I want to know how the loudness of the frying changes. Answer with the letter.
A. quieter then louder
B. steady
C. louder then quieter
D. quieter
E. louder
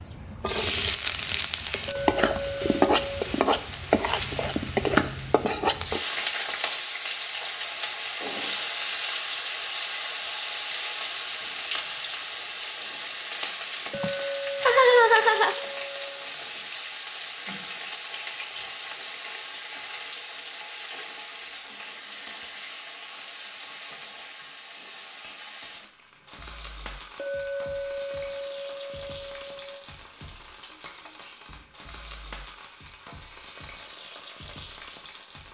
D.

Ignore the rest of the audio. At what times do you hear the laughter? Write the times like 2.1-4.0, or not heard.
13.9-15.6.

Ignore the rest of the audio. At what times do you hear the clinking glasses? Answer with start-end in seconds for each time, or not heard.
1.9-3.2, 13.9-16.2, 27.1-29.8.